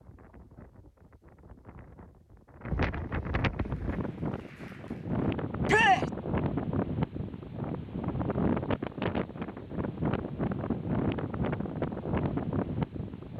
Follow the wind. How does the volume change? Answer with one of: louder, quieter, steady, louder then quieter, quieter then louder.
louder.